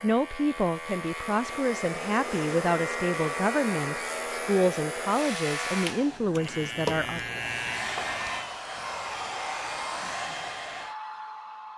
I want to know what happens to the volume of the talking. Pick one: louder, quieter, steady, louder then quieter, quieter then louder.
steady.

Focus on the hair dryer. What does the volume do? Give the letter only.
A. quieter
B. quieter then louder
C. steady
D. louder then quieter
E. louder
C.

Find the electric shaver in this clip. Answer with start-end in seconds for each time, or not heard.
0.0-8.4.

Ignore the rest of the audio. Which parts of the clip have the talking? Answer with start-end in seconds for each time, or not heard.
0.0-7.4.